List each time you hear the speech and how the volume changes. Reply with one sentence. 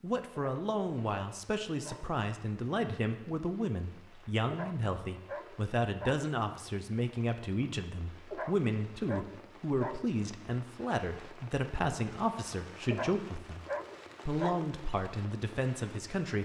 You can hear the speech from 0.0 to 13.6 s, at a steady volume; and briefly from 14.2 to 16.3 s.